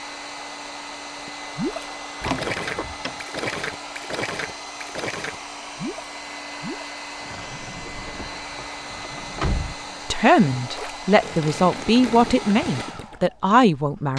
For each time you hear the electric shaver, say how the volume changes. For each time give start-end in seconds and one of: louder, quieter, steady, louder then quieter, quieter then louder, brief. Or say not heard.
not heard.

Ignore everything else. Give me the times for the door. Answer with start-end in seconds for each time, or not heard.
2.2-3.1, 7.9-9.8.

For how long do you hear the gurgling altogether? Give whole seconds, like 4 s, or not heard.
12 s.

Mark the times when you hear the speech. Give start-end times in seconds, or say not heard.
10.1-14.1.